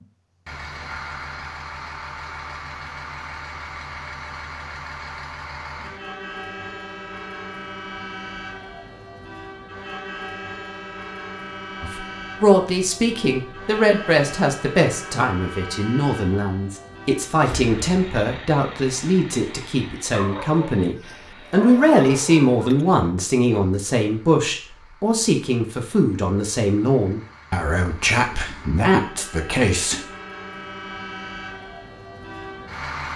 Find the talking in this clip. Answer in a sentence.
You can hear the talking from 11.8 to 30.0 s.